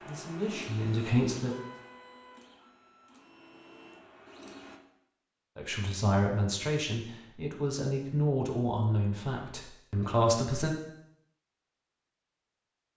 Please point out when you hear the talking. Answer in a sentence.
You can hear the talking from 0.1 to 1.6 s and from 5.5 to 10.7 s.